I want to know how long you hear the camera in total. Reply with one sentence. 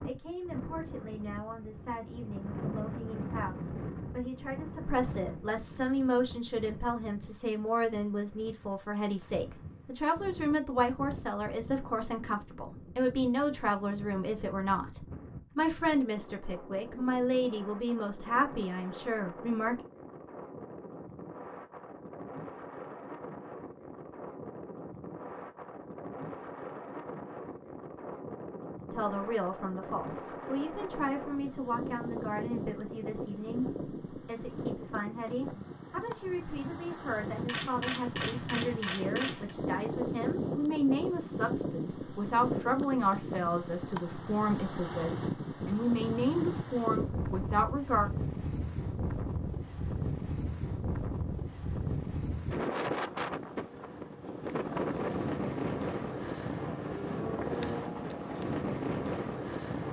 You can hear the camera for 2 seconds altogether.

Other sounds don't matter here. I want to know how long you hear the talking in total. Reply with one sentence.
You can hear the talking for 39 seconds altogether.